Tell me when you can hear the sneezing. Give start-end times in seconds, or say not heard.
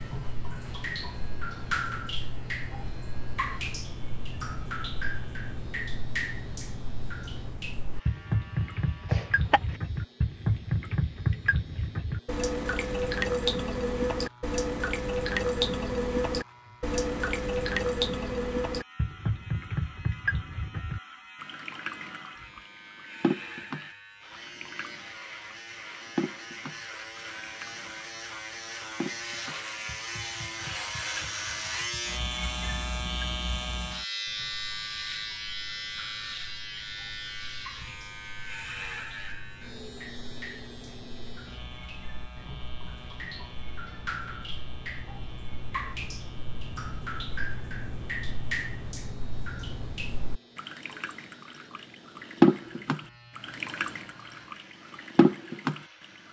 9.1-9.8.